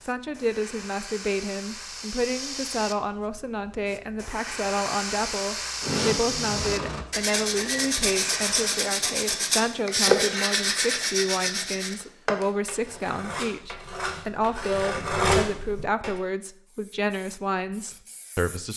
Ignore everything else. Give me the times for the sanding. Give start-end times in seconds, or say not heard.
5.8-16.1.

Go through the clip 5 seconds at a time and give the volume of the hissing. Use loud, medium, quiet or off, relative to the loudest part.
medium, loud, off, quiet.